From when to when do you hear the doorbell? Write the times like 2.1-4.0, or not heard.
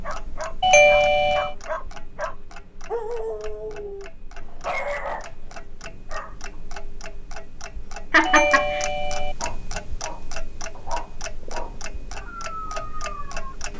0.6-1.6, 8.2-9.3.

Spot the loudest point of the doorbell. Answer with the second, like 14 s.
1 s.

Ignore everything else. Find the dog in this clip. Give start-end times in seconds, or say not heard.
0.0-6.3, 9.3-13.6.